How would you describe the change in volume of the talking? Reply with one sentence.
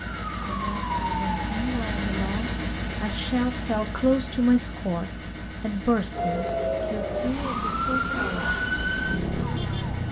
The volume of the talking goes up, then down.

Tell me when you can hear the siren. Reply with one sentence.
You can hear the siren from 0.0 to 1.6 s and from 6.1 to 10.0 s.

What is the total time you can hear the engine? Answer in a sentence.
You can hear the engine for 10 seconds altogether.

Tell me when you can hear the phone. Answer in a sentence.
The phone can't be heard in this clip.